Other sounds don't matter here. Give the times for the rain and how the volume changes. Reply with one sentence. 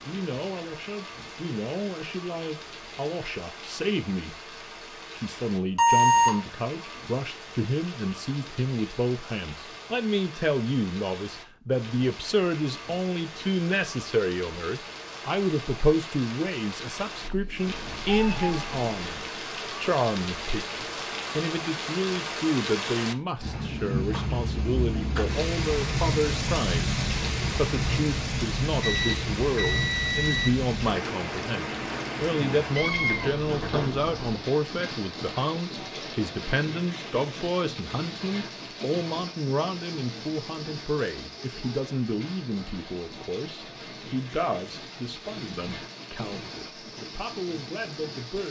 You can hear the rain from 0.0 to 48.4 s, getting louder then quieter.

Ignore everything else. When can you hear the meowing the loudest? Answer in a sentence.
The volume of the meowing peaks at 33 seconds.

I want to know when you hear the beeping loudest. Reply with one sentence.
The loudest moment of the beeping is at 6 seconds.